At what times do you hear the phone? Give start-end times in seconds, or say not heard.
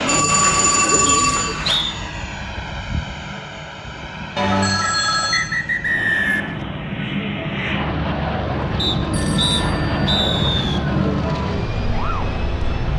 0.1-1.8, 4.3-5.4, 9.1-10.2.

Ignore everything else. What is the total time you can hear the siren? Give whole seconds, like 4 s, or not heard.
13 s.